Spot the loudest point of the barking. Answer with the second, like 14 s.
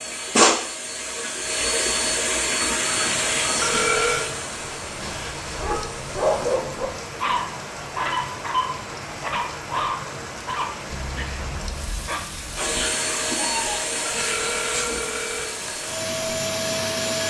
6 s.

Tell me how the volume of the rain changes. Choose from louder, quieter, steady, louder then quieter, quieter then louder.
steady.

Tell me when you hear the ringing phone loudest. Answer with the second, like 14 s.
4 s.